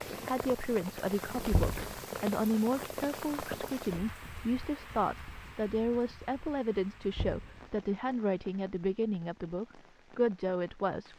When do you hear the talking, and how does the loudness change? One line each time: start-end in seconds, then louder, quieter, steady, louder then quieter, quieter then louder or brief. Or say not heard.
0.2-11.1 steady.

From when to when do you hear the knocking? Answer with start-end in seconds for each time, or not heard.
1.5-1.9, 7.2-7.6.